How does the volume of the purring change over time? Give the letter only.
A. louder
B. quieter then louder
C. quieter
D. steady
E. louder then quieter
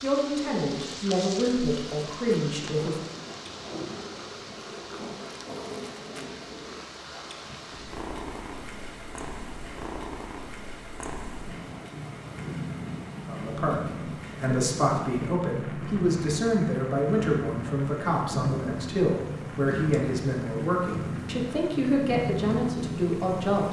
A.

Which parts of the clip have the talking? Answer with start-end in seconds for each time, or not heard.
0.0-3.0, 13.2-23.6.